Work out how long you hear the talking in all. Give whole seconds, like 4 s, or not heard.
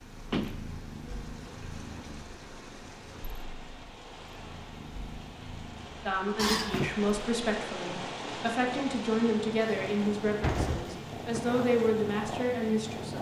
7 s.